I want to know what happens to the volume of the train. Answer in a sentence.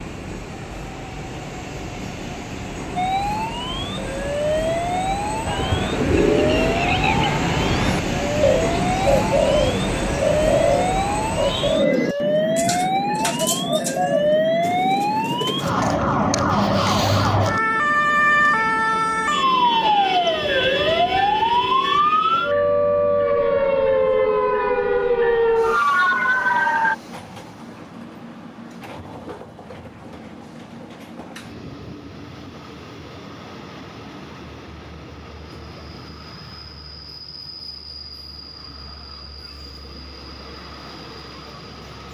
The loudness of the train goes down.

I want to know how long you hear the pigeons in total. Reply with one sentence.
You can hear the pigeons for 10 seconds altogether.